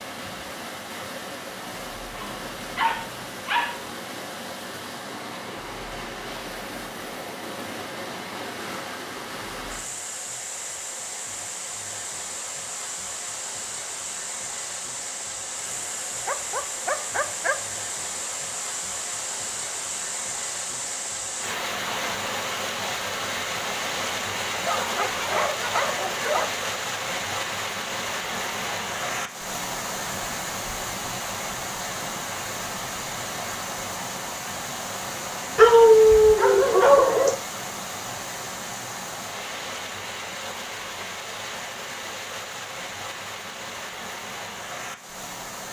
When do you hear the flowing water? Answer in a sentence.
You can hear the flowing water from 0.0 to 45.6 s.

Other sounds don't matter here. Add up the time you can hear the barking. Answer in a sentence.
The barking can be heard for 7 seconds in total.